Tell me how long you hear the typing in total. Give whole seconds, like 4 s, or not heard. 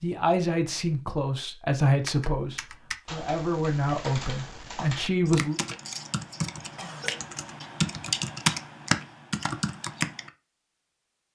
8 s.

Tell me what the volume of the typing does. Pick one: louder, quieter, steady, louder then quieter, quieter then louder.
louder.